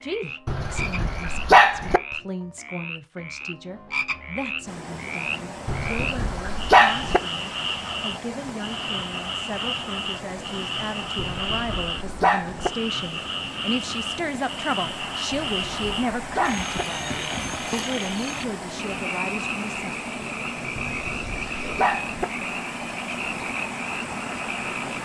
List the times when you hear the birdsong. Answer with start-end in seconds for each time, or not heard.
not heard.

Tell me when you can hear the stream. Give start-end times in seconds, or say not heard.
4.7-25.0.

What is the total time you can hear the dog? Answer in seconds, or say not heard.
8 s.